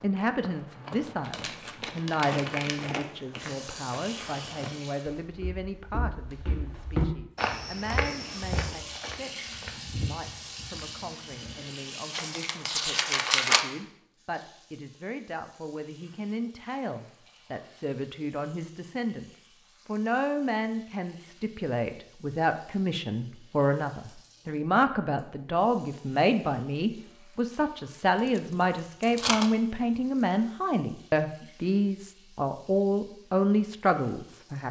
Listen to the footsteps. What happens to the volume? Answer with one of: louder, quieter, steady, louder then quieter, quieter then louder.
louder then quieter.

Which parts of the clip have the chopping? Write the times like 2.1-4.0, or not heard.
not heard.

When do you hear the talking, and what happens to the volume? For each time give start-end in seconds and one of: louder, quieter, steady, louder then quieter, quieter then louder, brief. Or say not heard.
0.0-34.6 quieter then louder.